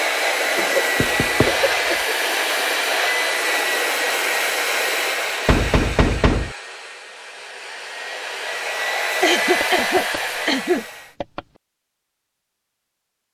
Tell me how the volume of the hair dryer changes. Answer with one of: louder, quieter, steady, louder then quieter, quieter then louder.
quieter then louder.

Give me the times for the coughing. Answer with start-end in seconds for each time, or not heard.
0.6-2.1, 9.2-10.8.